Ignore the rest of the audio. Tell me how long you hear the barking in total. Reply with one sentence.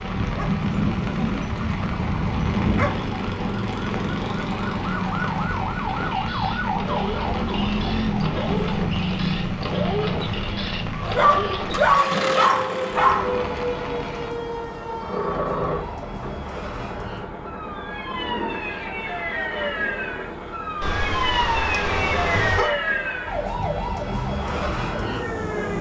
You can hear the barking for 7 seconds altogether.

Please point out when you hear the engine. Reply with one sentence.
The engine can be heard from 0.0 to 25.4 s.